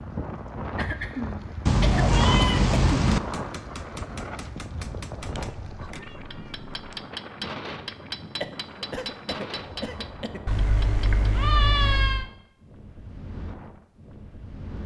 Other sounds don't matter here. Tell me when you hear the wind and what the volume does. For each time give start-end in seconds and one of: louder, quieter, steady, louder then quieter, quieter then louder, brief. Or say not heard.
0.0-14.8 quieter.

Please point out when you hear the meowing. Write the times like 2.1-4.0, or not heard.
1.6-3.2, 5.2-7.0, 10.4-12.3.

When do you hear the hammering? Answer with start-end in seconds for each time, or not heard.
3.1-11.2.